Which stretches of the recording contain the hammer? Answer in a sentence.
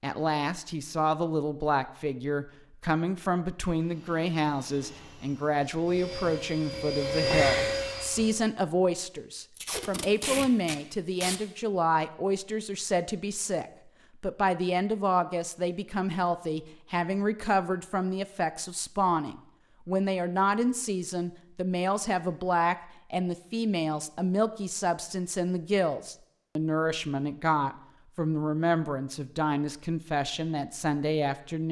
The hammer can't be heard in this clip.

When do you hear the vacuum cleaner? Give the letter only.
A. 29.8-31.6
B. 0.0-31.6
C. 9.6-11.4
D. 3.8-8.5
D.